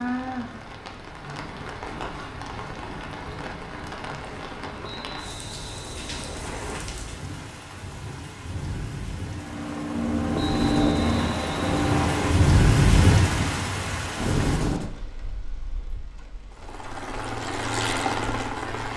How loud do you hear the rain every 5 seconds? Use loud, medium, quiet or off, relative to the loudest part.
medium, quiet, loud, quiet.